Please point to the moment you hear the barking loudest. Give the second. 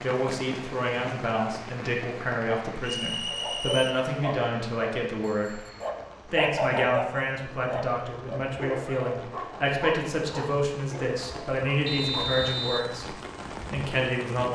7 s.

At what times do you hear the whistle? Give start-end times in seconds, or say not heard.
2.8-4.0, 11.8-12.8.